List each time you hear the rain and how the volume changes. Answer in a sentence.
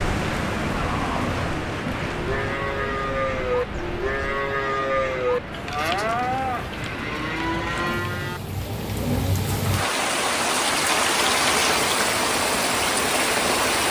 You can hear the rain from 0.0 to 13.8 s, getting quieter then louder.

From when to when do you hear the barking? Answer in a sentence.
The barking can't be heard in this clip.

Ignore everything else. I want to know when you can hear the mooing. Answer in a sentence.
The mooing can be heard from 0.8 to 9.3 s.